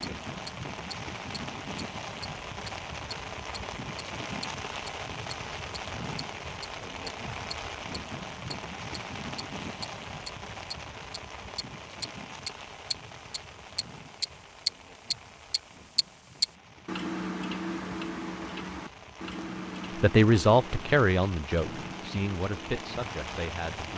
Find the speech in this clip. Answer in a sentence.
The speech can be heard from 19.9 to 23.9 s.